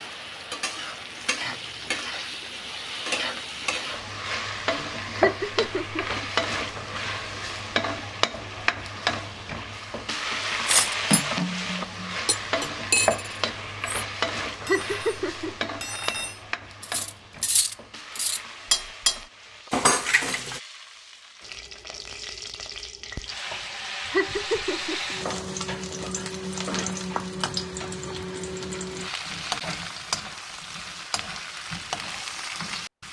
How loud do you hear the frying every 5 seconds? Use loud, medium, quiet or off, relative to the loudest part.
loud, loud, loud, medium, medium, loud, medium.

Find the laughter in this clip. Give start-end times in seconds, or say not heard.
5.2-6.7, 14.6-16.2, 24.1-25.1.